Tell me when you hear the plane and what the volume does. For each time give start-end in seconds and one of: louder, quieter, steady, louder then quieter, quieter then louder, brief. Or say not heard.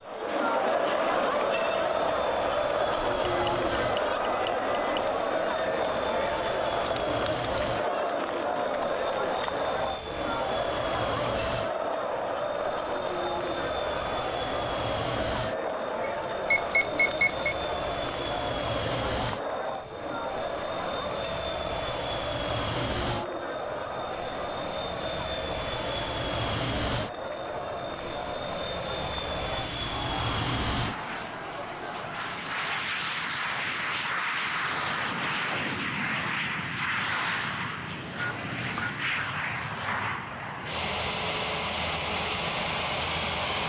0.0-43.6 louder.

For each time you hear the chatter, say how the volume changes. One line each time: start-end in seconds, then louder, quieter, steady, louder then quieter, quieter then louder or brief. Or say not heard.
0.0-32.8 quieter.